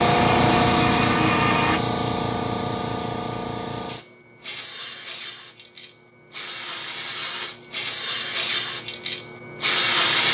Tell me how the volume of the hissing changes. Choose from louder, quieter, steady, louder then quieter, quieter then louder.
quieter then louder.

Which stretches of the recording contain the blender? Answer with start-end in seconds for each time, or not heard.
0.0-1.8.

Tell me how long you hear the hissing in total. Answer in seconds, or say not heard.
10 s.